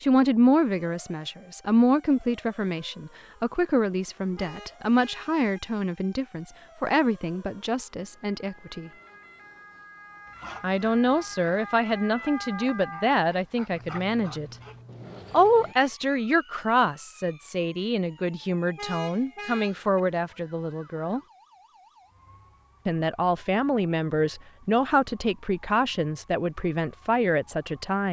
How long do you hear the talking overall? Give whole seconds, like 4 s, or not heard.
24 s.